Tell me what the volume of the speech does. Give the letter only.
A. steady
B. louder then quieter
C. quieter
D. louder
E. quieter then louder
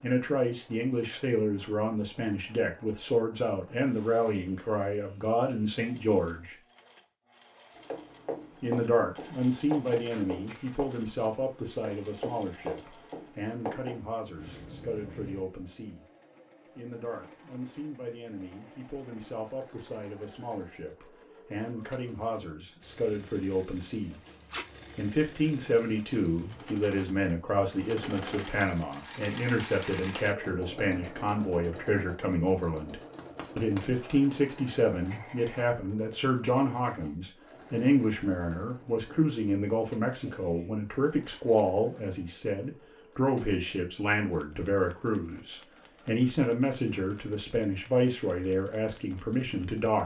E.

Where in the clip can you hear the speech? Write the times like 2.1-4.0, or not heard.
0.0-6.5, 8.6-16.1, 16.8-24.2, 24.9-50.0.